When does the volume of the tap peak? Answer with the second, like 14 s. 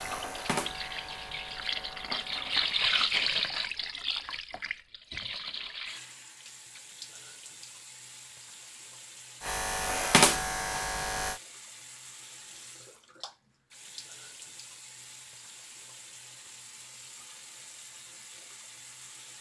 3 s.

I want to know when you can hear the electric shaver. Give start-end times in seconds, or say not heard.
0.0-2.8, 9.4-11.4.